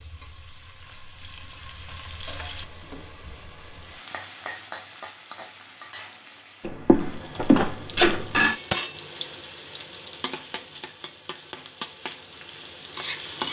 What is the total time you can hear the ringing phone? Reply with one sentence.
You can hear the ringing phone for 2 seconds altogether.